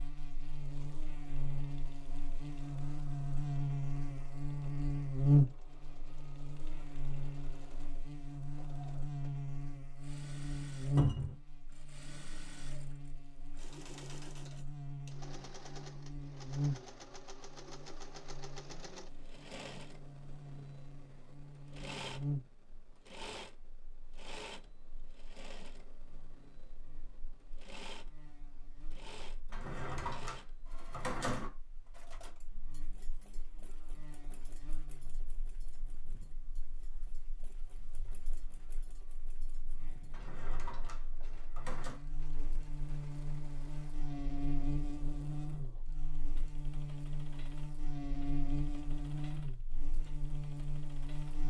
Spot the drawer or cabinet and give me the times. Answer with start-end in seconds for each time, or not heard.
10.9-11.3, 29.5-31.5, 40.1-42.0.